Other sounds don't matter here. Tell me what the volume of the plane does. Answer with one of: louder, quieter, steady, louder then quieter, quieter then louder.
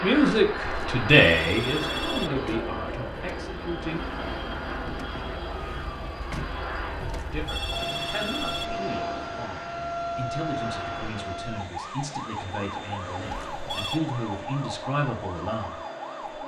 quieter.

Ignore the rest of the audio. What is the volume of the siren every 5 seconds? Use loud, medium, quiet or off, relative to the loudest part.
medium, loud, loud, loud.